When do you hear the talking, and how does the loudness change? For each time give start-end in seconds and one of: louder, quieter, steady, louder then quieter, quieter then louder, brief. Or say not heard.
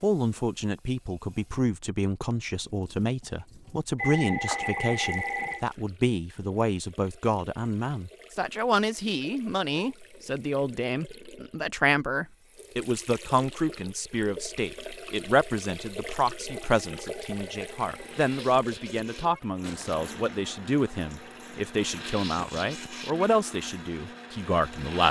0.0-25.0 steady.